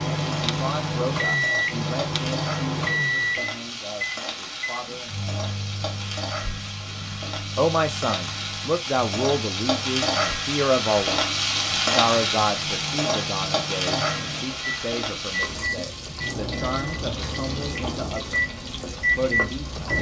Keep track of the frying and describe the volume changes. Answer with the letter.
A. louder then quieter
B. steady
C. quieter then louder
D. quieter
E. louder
A.